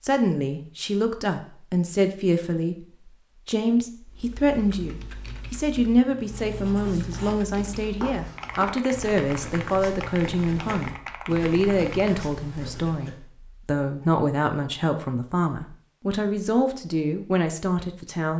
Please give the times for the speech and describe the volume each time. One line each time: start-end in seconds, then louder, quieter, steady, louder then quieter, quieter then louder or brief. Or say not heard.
0.0-18.3 steady.